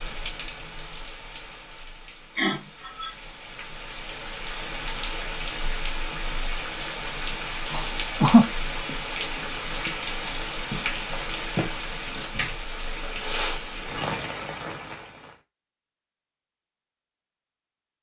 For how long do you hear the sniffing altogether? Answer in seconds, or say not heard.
2 s.